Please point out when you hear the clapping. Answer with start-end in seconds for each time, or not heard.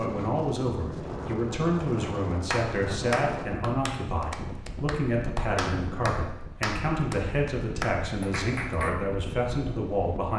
2.5-9.0.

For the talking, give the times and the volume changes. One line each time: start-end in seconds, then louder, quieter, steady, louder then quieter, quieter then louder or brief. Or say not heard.
0.0-10.3 steady.